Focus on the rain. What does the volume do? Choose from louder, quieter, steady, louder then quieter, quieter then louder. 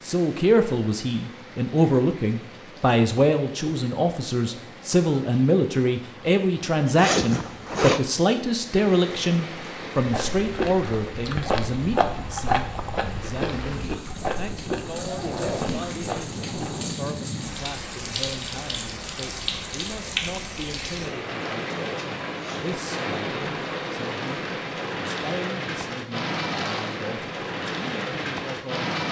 louder.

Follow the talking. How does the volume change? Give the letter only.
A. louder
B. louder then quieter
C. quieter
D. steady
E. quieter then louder
C.